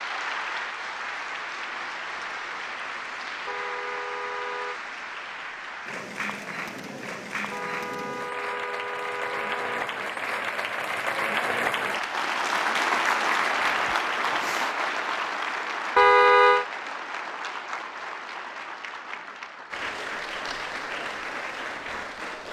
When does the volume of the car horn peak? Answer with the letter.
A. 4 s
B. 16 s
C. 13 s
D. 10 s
B.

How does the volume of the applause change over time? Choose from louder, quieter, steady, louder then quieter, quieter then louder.
louder then quieter.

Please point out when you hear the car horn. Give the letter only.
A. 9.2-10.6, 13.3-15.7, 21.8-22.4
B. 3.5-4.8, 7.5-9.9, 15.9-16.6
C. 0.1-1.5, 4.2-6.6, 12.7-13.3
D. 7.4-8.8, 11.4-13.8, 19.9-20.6
B.